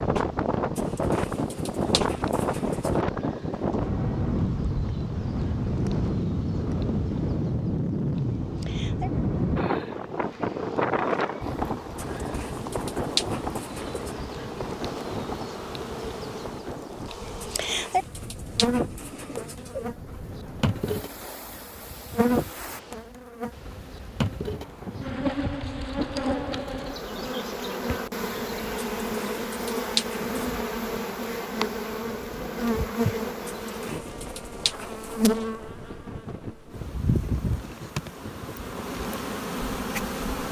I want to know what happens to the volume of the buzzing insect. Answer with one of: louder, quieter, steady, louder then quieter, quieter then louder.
louder.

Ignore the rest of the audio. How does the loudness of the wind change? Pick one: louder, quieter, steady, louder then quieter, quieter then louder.
quieter.